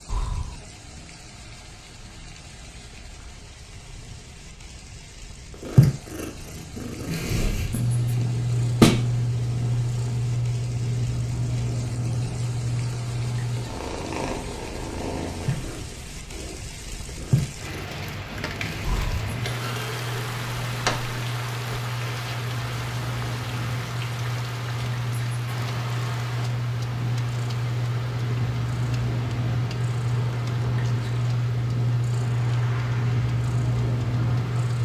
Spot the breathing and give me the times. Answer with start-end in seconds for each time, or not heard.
0.1-0.6, 18.8-19.3.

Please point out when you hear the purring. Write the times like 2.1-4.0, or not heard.
5.5-34.7.